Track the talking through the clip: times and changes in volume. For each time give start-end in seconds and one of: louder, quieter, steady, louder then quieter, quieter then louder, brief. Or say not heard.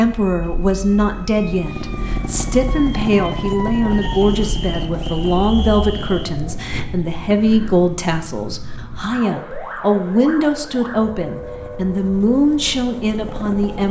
0.0-13.8 steady.